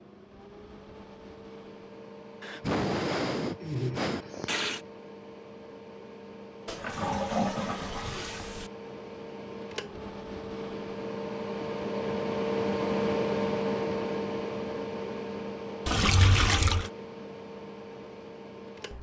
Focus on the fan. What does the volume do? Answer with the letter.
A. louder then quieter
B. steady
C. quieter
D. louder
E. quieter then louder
A.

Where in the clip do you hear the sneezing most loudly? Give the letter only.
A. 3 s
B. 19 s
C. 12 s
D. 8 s
A.